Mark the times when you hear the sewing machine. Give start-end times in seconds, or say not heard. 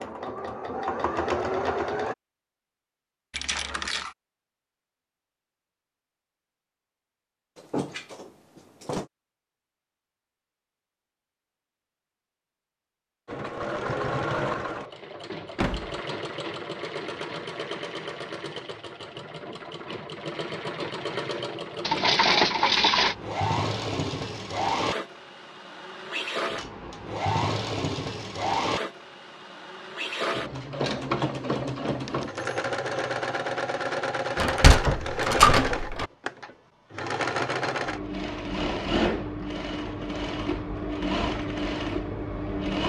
0.0-2.1, 13.2-42.8.